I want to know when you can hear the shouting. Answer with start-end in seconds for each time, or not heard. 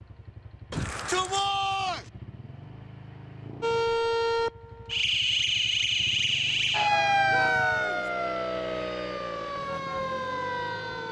0.7-2.0, 7.2-8.1.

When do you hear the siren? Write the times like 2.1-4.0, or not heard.
3.6-11.0.